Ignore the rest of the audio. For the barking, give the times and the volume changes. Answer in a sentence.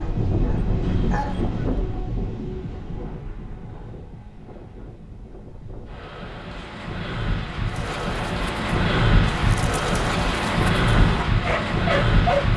You can hear the barking briefly from 0.0 to 1.5 s; and from 7.7 to 12.5 s, getting louder.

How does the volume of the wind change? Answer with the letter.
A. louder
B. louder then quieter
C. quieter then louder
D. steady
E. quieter
C.